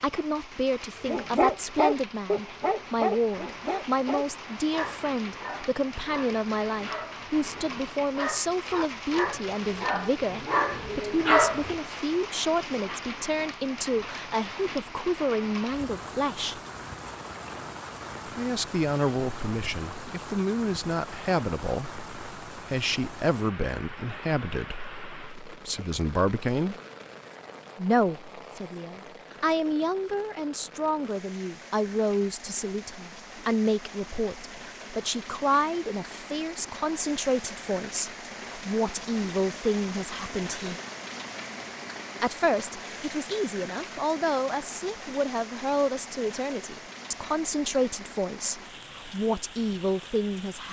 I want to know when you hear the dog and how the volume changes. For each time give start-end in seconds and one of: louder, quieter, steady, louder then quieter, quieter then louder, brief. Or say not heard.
1.1-11.8 quieter then louder.